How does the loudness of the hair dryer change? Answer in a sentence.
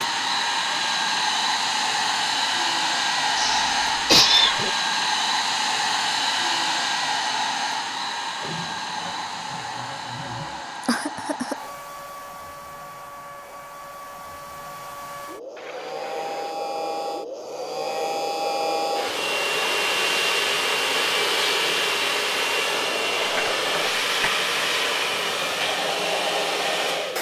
The volume of the hair dryer goes down, then up.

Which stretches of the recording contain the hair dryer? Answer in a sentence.
The hair dryer can be heard from 0.0 to 27.1 s.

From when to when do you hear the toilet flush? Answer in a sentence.
The toilet flush can be heard from 8.4 to 10.9 s and from 15.6 to 16.6 s.